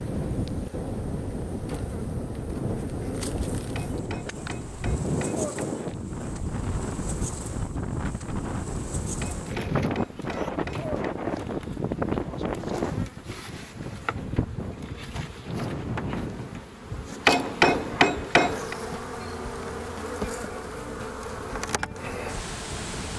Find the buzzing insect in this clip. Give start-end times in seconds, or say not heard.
0.0-23.1.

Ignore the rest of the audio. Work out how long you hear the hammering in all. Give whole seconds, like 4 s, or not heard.
5 s.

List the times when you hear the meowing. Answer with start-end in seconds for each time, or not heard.
9.4-10.5.